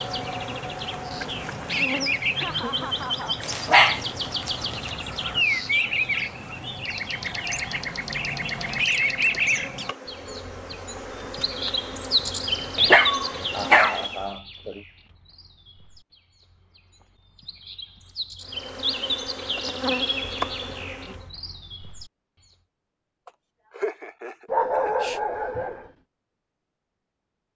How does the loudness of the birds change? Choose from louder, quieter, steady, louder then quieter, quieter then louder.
quieter then louder.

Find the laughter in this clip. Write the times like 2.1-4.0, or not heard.
2.4-3.4, 13.5-14.8, 23.2-24.9.